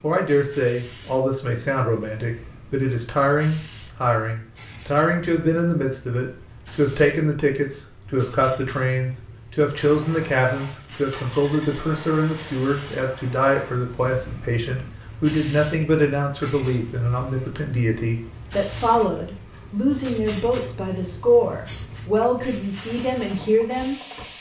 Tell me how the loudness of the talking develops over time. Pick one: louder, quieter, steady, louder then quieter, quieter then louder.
steady.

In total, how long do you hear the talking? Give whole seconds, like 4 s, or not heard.
24 s.